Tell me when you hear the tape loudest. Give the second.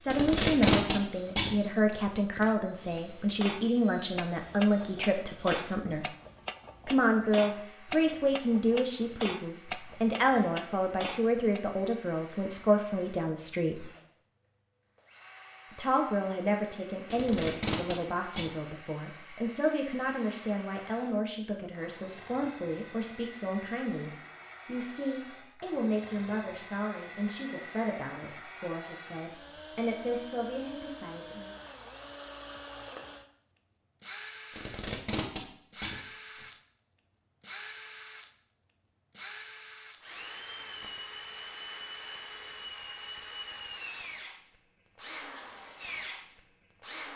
1 s.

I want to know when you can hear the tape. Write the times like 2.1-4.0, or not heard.
0.1-2.5, 17.1-18.5, 34.5-36.5.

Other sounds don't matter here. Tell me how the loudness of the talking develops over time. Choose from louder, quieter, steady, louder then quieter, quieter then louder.
quieter.